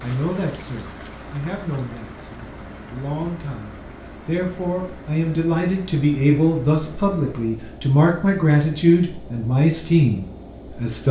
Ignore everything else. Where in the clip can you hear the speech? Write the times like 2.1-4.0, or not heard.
0.0-11.0.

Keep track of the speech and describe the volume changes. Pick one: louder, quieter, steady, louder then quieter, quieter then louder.
louder.